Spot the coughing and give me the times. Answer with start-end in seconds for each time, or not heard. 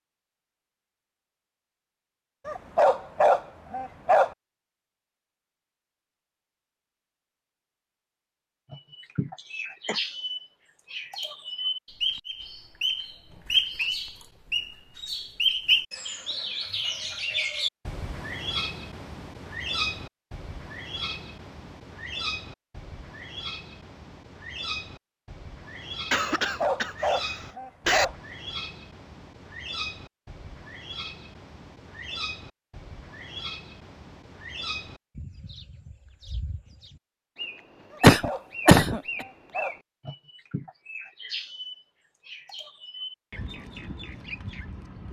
9.3-10.0, 26.1-28.1, 38.0-39.0.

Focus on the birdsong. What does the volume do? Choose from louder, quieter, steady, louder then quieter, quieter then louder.
quieter.